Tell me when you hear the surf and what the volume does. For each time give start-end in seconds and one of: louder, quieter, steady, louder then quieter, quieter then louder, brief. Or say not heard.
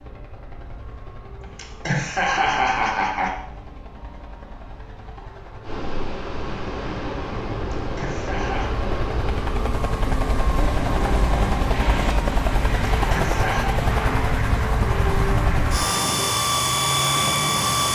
5.6-17.9 steady.